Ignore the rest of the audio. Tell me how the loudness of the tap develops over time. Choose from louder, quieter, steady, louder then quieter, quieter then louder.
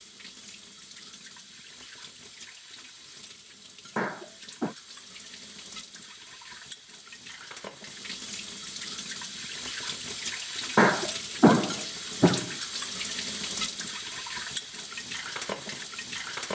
louder.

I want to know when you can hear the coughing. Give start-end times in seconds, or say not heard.
4.0-4.8, 10.8-12.5.